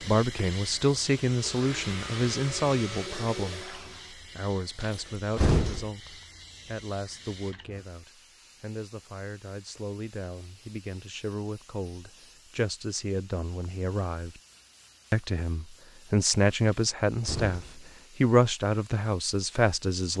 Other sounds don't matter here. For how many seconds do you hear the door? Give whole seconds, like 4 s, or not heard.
2 s.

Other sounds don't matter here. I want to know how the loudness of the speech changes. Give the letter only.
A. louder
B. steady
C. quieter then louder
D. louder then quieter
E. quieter
C.